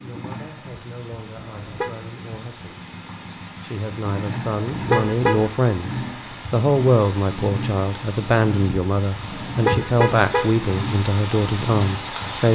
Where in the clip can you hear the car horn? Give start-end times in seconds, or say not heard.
1.4-1.9, 4.7-5.5, 9.2-10.6.